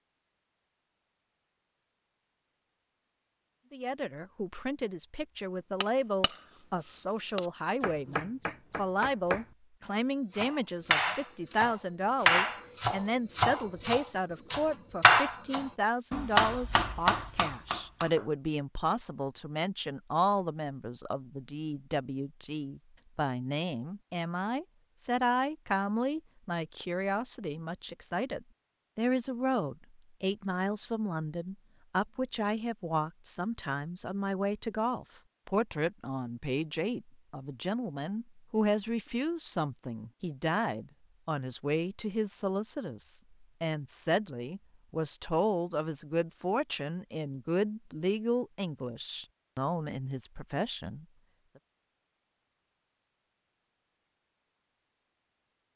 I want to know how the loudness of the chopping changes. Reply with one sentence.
The loudness of the chopping goes up.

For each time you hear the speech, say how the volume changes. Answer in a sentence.
You can hear the speech from 3.7 to 51.0 s, at a steady volume.